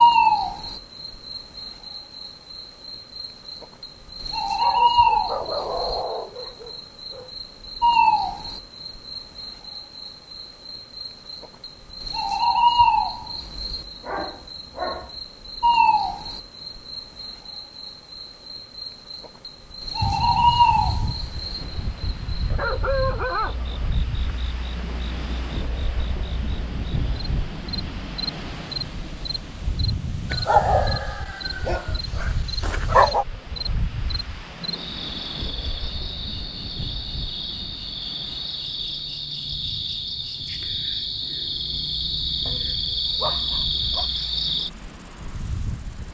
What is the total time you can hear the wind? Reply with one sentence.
The wind can be heard for 26 seconds in total.